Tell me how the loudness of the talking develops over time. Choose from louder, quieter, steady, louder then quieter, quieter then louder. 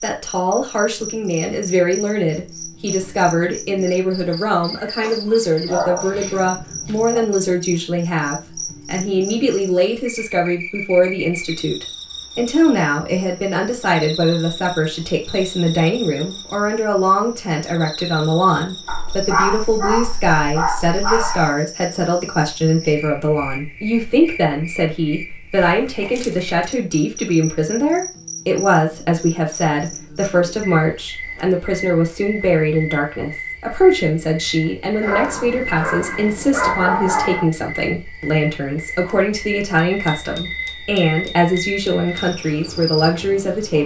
steady.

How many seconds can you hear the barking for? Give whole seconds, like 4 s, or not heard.
7 s.